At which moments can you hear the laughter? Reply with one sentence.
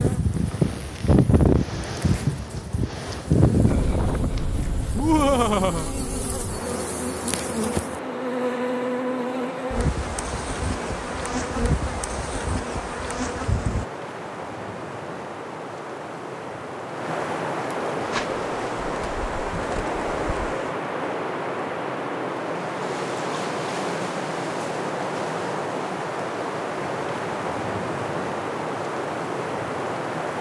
The laughter can be heard from 5.0 to 6.0 s.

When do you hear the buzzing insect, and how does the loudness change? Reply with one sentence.
You can hear the buzzing insect from 0.0 to 13.8 s, getting louder; and briefly from 17.9 to 20.8 s.